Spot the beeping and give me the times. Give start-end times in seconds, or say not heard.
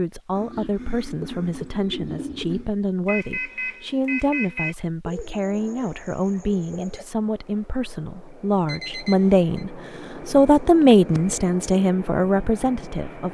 3.0-4.8, 8.7-9.7.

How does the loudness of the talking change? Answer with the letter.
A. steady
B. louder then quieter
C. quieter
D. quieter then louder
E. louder
E.